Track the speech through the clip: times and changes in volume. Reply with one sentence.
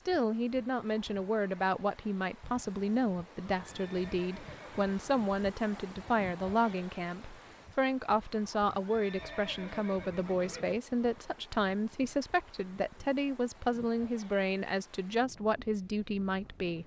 You can hear the speech from 0.1 to 16.8 s, at a steady volume.